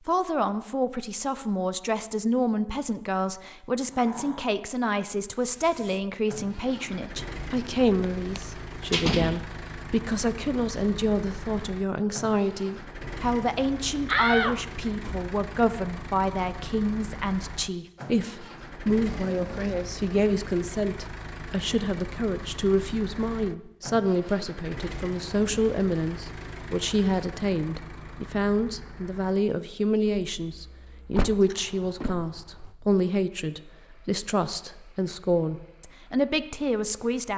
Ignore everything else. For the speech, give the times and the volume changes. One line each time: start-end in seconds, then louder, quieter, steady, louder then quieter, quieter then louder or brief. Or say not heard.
0.1-37.3 steady.